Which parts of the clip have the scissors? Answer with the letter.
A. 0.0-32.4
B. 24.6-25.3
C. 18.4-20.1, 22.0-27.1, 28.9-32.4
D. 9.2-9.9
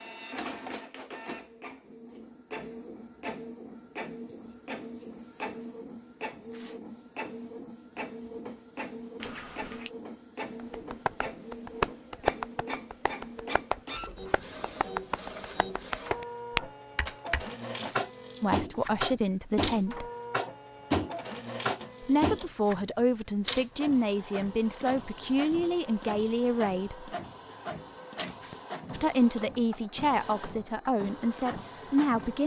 D.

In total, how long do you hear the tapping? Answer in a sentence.
The tapping can be heard for 12 seconds in total.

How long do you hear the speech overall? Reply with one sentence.
You can hear the speech for 10 seconds altogether.